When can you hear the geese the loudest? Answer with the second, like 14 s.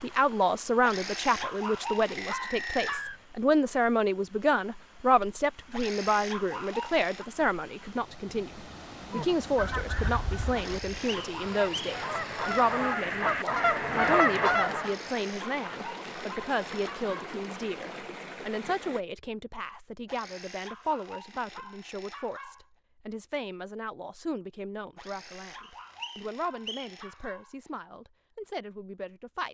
14 s.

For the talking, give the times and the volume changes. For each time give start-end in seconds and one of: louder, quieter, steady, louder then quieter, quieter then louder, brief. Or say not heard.
0.0-29.4 quieter.